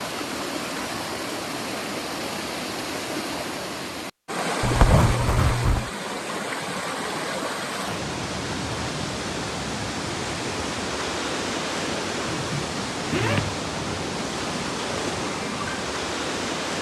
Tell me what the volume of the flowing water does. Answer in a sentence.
The loudness of the flowing water stays about the same.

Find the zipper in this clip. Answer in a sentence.
The zipper can be heard from 4.6 to 5.9 s and from 12.2 to 13.6 s.